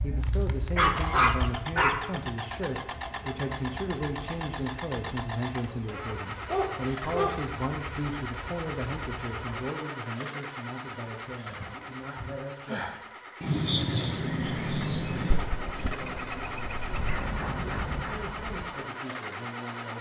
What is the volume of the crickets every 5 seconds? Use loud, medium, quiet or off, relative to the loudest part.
quiet, quiet, loud, medium.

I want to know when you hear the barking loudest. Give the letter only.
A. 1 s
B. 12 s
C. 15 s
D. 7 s
A.